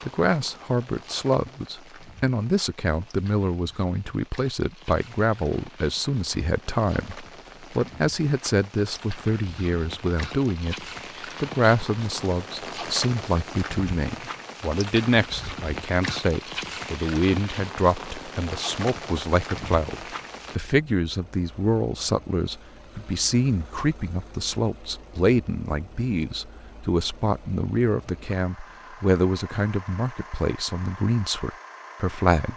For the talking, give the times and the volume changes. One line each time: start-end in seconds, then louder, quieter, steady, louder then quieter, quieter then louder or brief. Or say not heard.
0.0-32.5 steady.